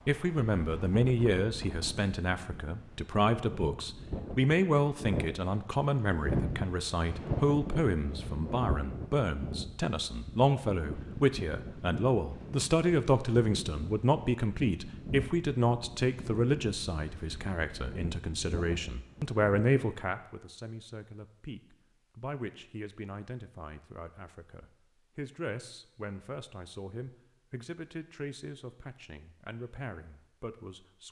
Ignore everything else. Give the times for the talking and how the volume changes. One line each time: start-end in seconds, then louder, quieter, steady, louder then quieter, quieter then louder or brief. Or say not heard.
0.1-31.0 quieter.